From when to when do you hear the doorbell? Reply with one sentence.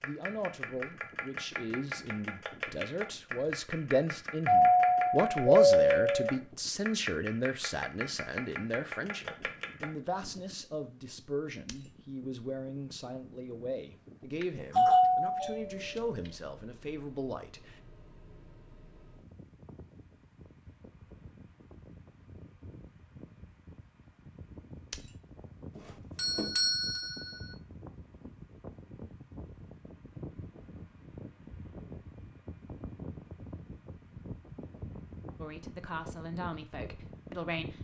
The doorbell can be heard from 4.5 to 6.3 s, from 14.4 to 15.9 s and from 26.1 to 27.3 s.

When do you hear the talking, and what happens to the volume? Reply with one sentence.
The talking can be heard from 0.0 to 17.8 s, getting louder then quieter; and briefly from 35.4 to 37.7 s.